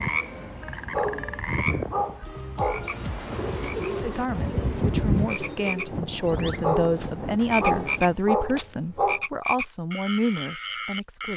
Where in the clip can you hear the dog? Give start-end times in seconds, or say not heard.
0.9-3.0, 6.6-9.2.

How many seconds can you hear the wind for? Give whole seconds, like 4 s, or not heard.
8 s.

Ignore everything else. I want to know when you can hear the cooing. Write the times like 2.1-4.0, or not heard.
3.3-6.0.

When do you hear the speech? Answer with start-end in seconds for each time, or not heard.
3.9-11.3.